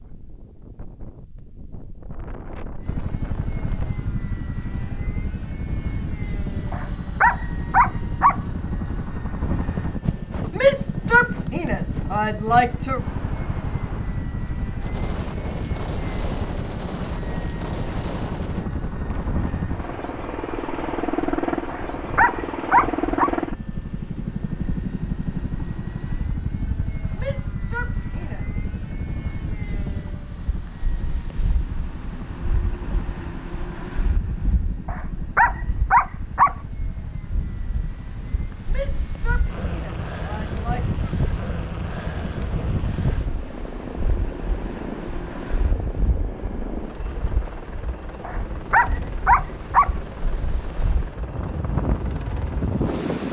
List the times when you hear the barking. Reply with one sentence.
You can hear the barking from 6.7 to 8.3 s, from 21.6 to 23.3 s, from 34.9 to 36.5 s and from 48.2 to 49.9 s.